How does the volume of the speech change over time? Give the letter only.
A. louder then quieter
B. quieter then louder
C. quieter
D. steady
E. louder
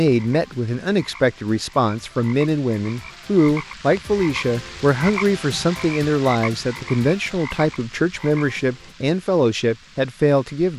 D.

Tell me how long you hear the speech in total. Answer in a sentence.
You can hear the speech for 11 seconds altogether.